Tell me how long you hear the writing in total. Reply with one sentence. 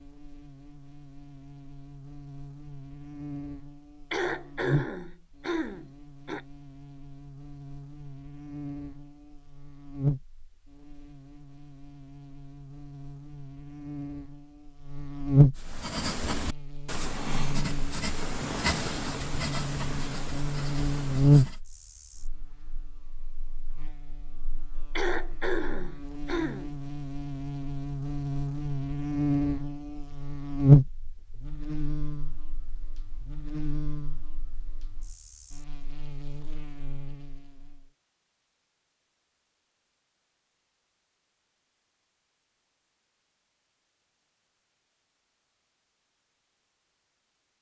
You can hear the writing for 6 seconds altogether.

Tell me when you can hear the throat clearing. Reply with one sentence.
You can hear the throat clearing from 4.1 to 6.4 s and from 24.9 to 26.7 s.